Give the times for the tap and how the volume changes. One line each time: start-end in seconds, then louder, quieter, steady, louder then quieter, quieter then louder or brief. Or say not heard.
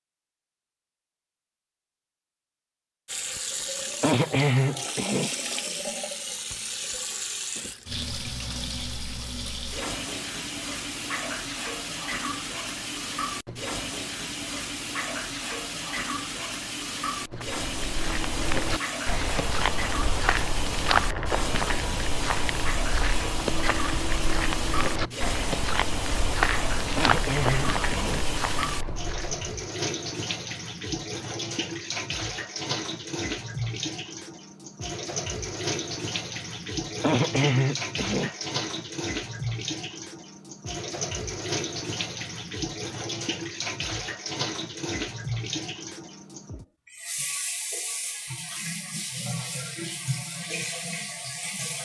3.0-51.8 steady.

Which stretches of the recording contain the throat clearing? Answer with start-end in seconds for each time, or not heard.
4.0-5.3, 26.9-28.8, 37.0-38.4.